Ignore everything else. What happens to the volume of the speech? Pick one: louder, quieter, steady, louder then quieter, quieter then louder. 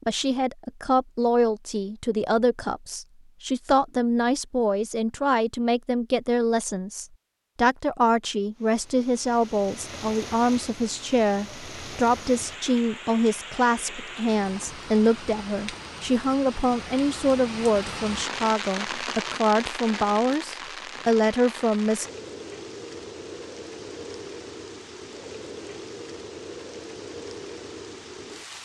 steady.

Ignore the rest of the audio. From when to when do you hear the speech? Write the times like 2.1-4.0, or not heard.
0.0-22.1.